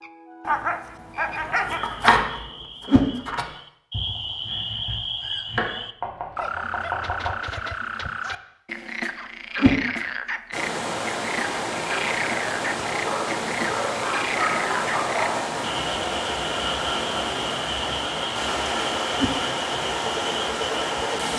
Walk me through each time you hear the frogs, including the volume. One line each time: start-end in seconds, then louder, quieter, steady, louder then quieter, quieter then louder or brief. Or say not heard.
0.0-21.3 louder.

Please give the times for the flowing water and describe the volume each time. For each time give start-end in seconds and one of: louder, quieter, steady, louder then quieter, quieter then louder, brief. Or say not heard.
10.5-21.3 steady.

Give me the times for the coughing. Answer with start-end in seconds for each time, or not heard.
not heard.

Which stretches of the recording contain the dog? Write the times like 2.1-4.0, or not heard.
0.5-2.1, 12.9-15.4.